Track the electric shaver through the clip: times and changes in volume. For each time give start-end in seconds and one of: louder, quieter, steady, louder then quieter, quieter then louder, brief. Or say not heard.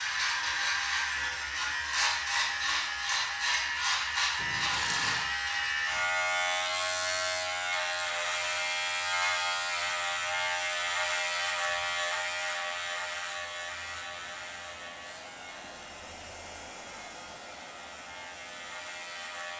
0.0-19.5 quieter.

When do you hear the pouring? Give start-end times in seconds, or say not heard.
4.3-5.3.